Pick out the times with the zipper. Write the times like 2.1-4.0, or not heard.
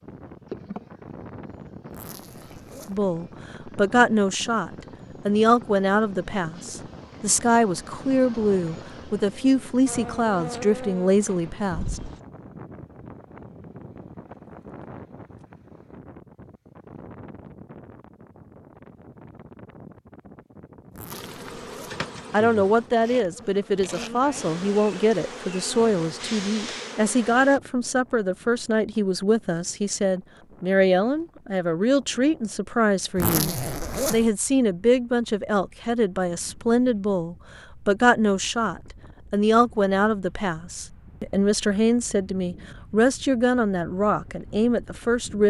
1.9-3.0, 20.9-22.1, 33.1-34.4.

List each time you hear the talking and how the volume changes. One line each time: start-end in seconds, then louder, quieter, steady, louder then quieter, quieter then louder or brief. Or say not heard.
2.9-12.0 steady
22.3-45.4 steady.